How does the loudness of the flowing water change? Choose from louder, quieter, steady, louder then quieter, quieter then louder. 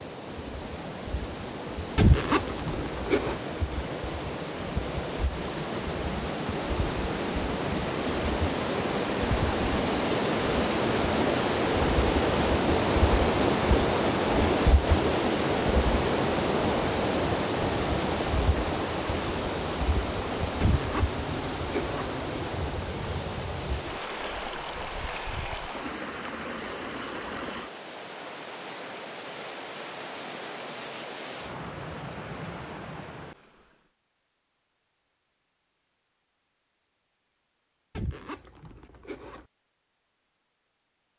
louder then quieter.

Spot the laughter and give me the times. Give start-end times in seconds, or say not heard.
not heard.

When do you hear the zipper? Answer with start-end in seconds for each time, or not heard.
1.9-3.4, 20.6-22.1, 38.0-39.5.